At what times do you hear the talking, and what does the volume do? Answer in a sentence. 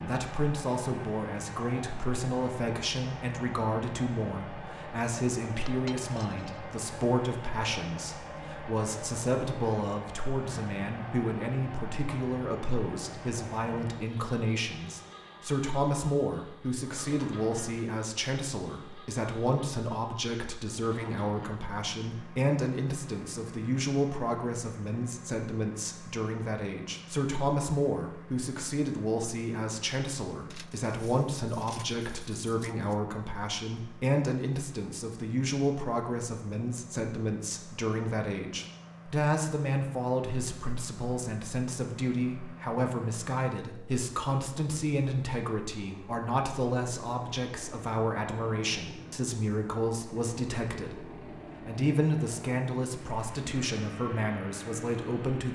You can hear the talking from 0.1 to 55.5 s, at a steady volume.